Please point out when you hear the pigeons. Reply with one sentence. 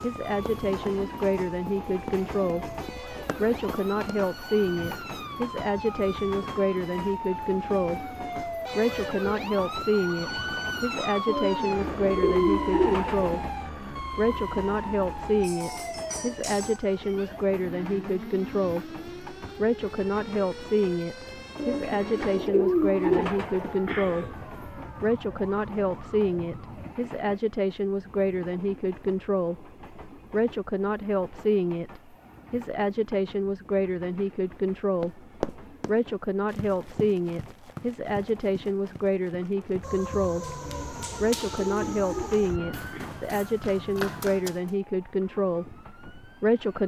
You can hear the pigeons from 11.2 to 13.4 s, from 21.6 to 24.4 s and from 40.6 to 43.1 s.